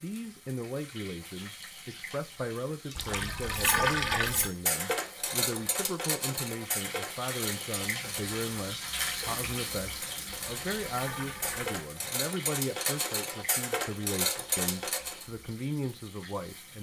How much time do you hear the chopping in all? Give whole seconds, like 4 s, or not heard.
not heard.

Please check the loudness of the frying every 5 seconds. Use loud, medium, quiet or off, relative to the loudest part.
medium, loud, medium, quiet.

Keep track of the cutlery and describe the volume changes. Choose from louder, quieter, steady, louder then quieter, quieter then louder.
quieter then louder.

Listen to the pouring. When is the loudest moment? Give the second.
4 s.